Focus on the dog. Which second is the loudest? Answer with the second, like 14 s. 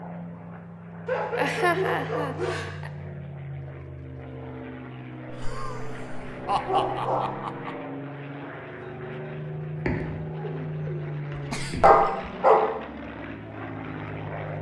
12 s.